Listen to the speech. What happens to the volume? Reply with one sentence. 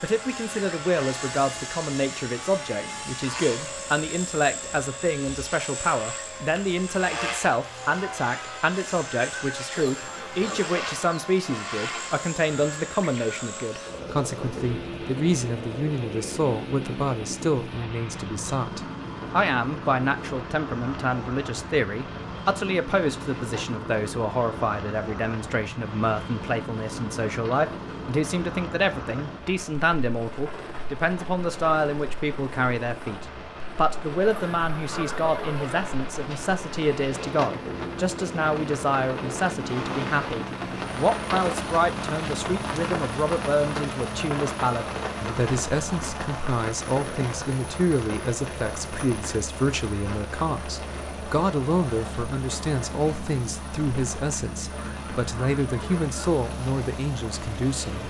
The volume of the speech stays about the same.